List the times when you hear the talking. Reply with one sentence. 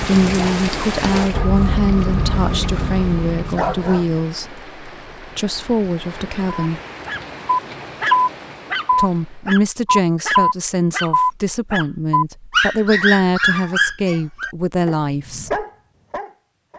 You can hear the talking from 0.0 to 6.8 s and from 8.9 to 15.7 s.